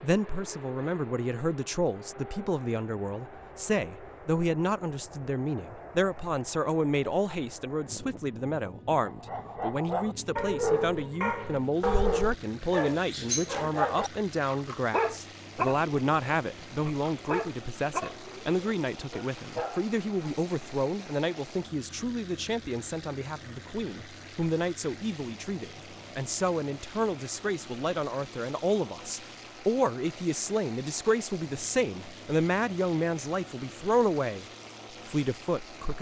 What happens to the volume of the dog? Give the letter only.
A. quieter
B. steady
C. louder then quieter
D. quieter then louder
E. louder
A.